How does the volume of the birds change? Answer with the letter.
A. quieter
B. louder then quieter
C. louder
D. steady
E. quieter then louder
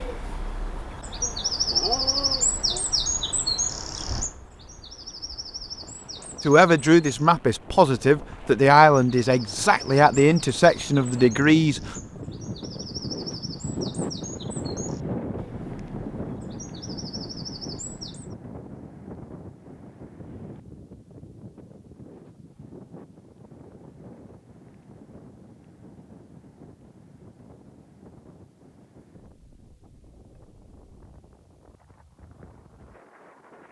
A.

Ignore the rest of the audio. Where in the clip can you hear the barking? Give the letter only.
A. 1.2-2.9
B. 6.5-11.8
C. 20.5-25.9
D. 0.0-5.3
A.